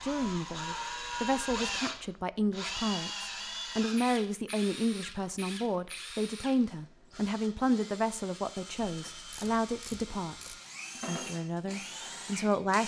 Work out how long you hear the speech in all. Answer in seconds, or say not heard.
13 s.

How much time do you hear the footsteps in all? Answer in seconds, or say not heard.
not heard.